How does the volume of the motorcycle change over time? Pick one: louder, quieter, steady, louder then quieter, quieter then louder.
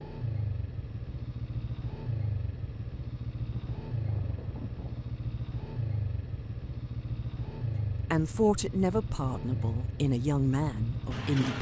steady.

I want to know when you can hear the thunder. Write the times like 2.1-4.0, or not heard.
3.5-5.2.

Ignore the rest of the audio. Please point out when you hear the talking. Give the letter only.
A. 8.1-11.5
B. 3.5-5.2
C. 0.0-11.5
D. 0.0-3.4
A.